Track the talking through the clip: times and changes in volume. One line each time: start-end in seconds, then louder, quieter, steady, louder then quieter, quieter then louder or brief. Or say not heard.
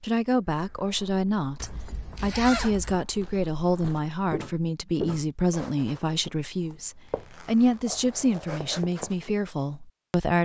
0.0-10.4 steady.